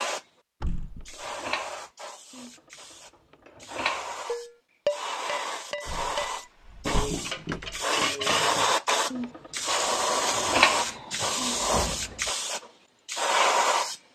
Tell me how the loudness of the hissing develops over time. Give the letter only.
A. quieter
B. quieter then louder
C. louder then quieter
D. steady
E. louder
E.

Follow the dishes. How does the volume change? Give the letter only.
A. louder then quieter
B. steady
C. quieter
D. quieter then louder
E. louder
E.